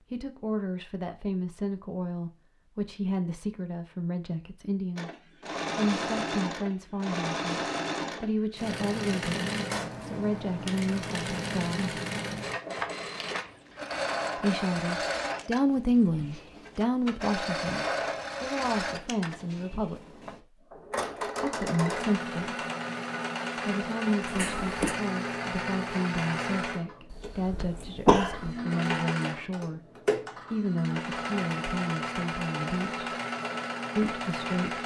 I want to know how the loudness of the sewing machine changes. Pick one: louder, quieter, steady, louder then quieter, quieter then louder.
steady.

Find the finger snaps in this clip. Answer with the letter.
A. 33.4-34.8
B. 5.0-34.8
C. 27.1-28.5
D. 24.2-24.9
D.